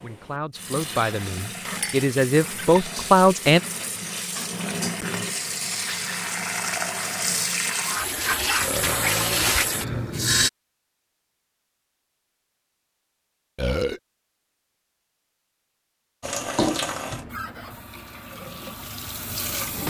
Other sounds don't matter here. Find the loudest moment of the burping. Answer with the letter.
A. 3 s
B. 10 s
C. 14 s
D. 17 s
C.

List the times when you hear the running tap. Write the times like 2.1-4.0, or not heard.
0.0-10.5, 16.2-19.8.